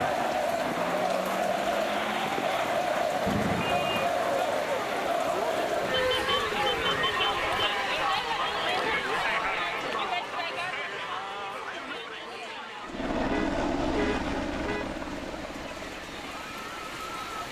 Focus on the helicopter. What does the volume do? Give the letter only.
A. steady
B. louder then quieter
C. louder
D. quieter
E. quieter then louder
D.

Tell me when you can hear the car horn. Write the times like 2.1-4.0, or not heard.
3.2-4.1, 5.9-7.5, 13.2-14.9.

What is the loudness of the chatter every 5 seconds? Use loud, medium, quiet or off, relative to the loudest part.
loud, loud, medium, quiet.